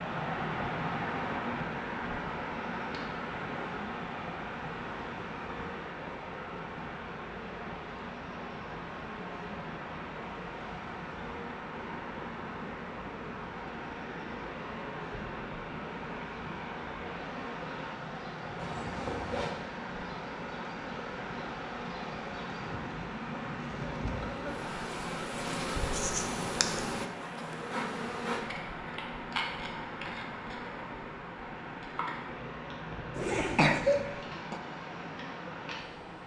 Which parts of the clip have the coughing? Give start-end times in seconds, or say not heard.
33.2-34.6.